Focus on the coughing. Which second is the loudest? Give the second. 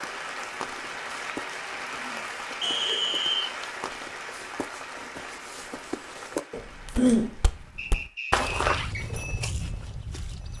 7 s.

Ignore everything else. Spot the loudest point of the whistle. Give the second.
3 s.